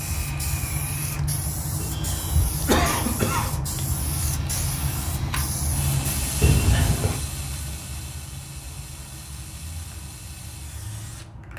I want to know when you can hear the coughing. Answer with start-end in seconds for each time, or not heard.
1.8-3.6, 6.4-7.2.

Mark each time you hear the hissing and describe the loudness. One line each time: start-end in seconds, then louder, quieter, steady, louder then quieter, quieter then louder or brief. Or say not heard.
0.0-11.5 quieter.